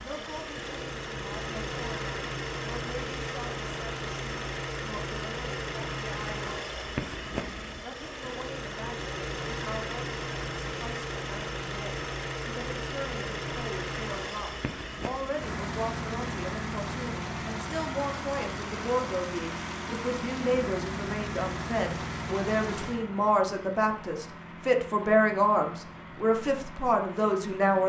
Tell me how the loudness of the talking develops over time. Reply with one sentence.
The loudness of the talking goes up.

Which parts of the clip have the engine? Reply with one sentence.
The engine can be heard from 0.0 to 27.8 s.